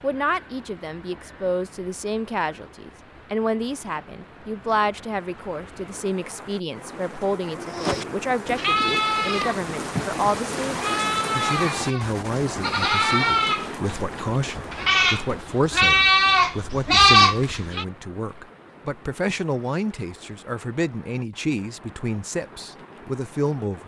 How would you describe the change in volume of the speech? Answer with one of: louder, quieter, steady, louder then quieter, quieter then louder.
steady.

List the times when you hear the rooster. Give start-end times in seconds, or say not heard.
not heard.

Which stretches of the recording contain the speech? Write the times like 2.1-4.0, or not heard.
0.0-23.8.